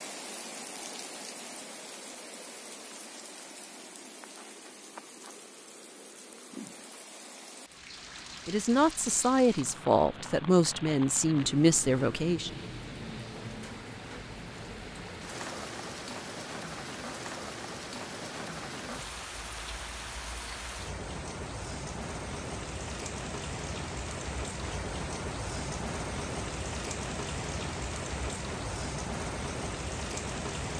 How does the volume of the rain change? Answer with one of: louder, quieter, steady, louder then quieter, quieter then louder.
louder.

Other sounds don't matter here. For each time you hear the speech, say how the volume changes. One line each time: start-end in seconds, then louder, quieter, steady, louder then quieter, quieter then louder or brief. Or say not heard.
8.4-12.5 steady.